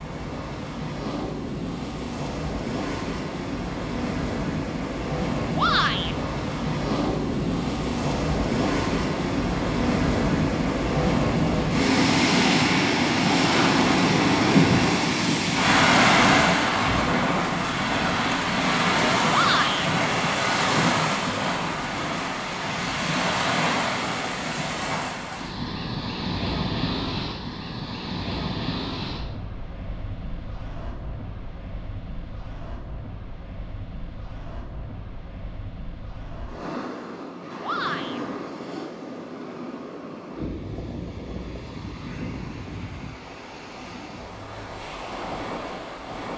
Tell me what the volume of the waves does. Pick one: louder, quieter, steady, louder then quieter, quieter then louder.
louder then quieter.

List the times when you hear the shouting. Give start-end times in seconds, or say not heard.
5.5-6.2, 19.3-19.9, 37.6-38.2.